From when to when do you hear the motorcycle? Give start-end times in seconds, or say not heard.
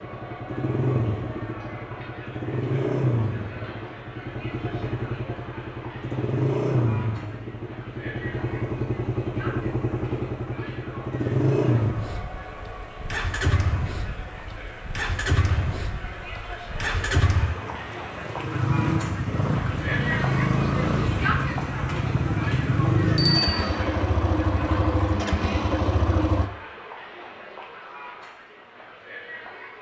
0.0-26.5.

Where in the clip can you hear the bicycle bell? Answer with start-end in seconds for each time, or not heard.
23.1-23.6.